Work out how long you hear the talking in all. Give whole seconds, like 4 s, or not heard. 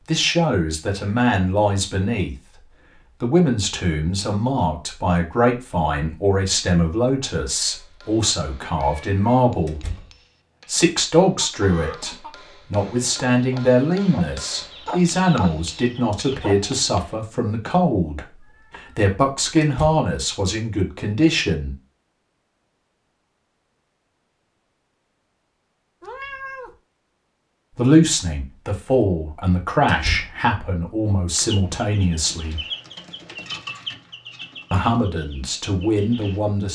28 s.